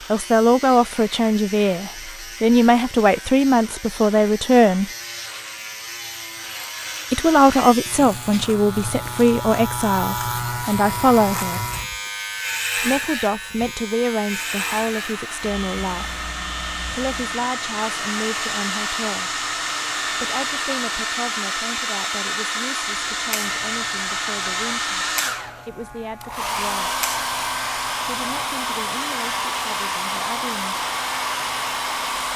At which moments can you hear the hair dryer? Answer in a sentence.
You can hear the hair dryer from 14.2 to 32.3 s.